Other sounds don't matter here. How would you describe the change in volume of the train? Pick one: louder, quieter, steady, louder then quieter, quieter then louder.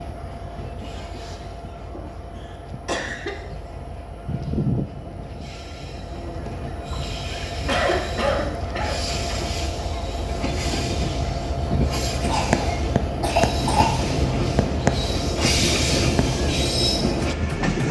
louder.